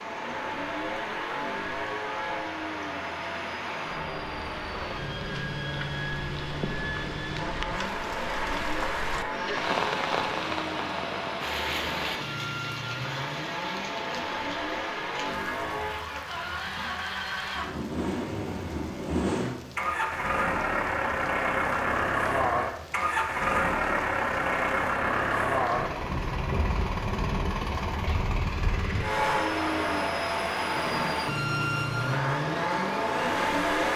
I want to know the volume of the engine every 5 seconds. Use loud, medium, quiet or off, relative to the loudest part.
medium, medium, medium, medium, loud, loud, loud.